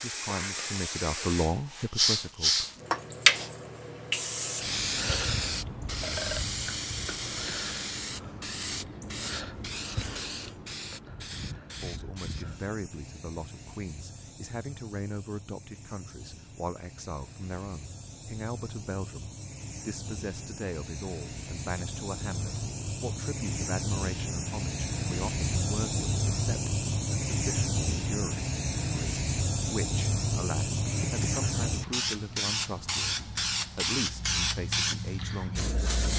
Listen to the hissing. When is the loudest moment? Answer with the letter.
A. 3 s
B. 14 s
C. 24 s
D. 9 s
A.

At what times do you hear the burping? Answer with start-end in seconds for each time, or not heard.
6.0-7.7, 30.9-32.1.